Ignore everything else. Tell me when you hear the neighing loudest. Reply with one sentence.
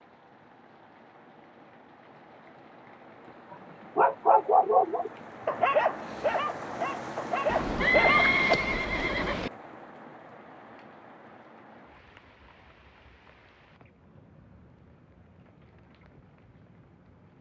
The volume of the neighing peaks at 8 seconds.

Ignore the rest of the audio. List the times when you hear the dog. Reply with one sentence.
The dog can be heard from 3.5 to 8.4 s.